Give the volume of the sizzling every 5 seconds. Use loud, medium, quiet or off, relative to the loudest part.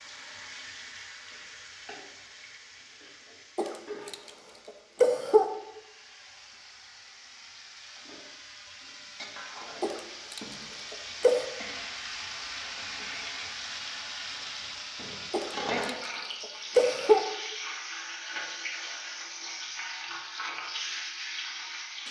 medium, medium, loud, loud, loud.